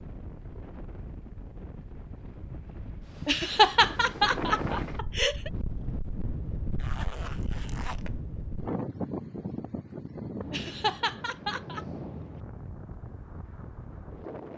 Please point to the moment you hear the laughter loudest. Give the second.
4 s.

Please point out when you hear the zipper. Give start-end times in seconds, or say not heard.
6.8-8.2.